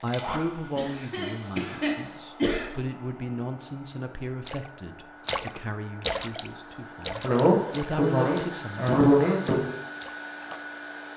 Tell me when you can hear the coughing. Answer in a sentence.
You can hear the coughing from 0.8 to 2.6 s and from 7.2 to 9.7 s.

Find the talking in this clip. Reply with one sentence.
The talking can be heard from 0.0 to 8.9 s.